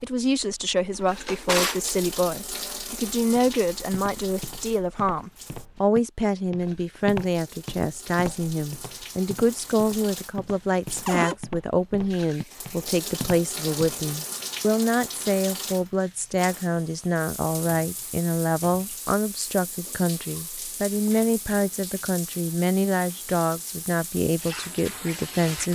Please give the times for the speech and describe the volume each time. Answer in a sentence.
The speech can be heard from 0.0 to 25.7 s, at a steady volume.